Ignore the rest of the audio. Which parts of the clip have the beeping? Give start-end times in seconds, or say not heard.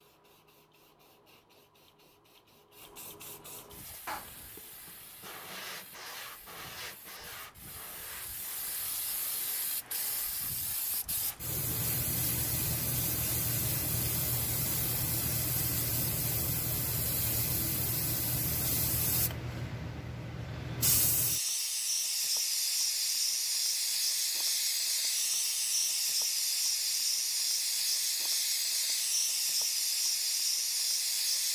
not heard.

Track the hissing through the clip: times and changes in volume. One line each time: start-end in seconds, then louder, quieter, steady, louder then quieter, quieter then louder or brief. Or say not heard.
0.0-31.5 louder.